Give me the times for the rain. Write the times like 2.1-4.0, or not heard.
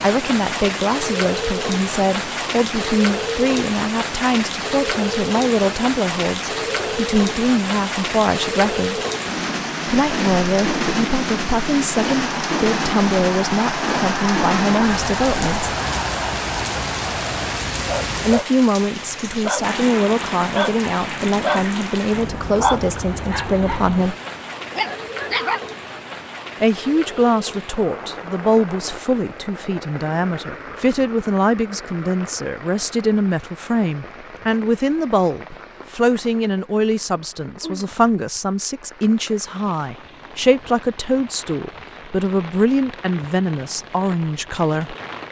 0.0-45.2.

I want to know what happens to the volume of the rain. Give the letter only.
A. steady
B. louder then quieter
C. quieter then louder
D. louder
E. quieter
E.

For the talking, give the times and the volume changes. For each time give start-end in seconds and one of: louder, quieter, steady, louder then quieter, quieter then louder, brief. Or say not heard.
0.0-9.0 steady
9.8-15.8 steady
18.2-24.1 steady
26.6-45.0 steady.